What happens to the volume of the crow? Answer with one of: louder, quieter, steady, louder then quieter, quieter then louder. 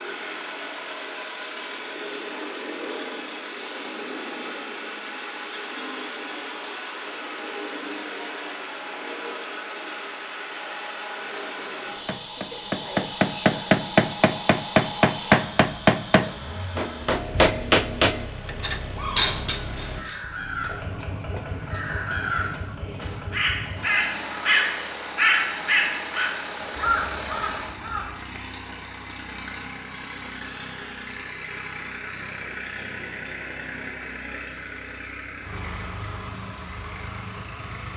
louder then quieter.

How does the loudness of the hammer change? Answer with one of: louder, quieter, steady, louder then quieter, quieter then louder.
quieter.